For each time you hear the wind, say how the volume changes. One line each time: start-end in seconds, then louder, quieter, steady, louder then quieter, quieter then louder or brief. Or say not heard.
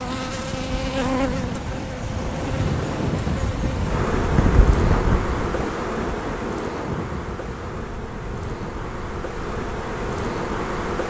0.2-11.0 louder then quieter.